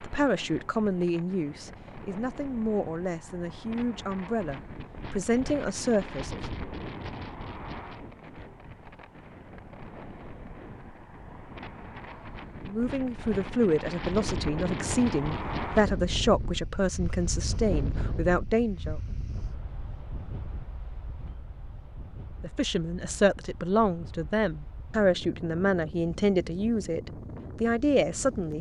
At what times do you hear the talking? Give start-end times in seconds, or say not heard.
0.0-6.4, 12.7-19.0, 22.4-28.5.